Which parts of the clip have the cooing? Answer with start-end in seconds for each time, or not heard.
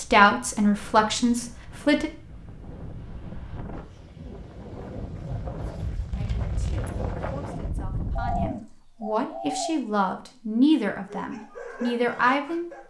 8.2-9.8.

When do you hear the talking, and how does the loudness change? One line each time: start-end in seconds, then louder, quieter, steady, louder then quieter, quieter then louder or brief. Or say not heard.
0.0-2.1 brief
6.2-12.7 louder.